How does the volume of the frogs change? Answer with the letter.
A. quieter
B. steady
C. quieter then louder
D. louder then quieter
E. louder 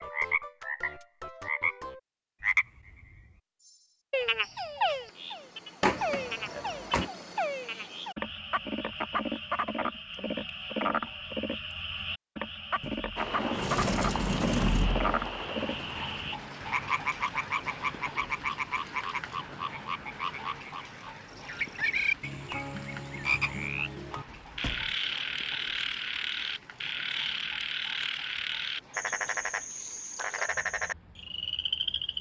B.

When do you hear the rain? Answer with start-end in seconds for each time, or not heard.
13.2-32.1.